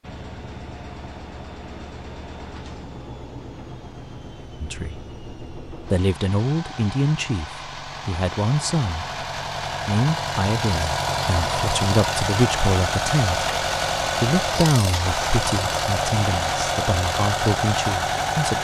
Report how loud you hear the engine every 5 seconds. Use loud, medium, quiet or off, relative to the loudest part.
quiet, medium, loud, loud.